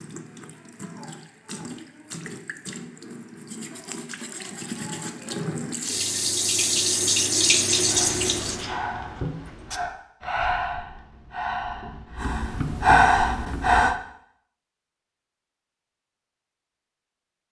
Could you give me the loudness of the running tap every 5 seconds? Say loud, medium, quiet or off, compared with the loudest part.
quiet, loud, off, off.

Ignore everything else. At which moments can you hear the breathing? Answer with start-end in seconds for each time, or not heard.
7.9-13.9.